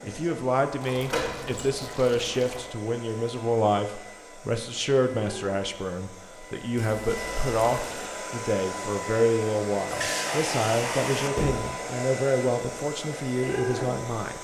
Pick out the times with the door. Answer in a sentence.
You can hear the door from 1.1 to 1.8 s and from 11.3 to 11.8 s.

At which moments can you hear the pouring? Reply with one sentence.
The pouring can be heard from 0.8 to 2.8 s, from 6.8 to 8.1 s and from 9.8 to 11.3 s.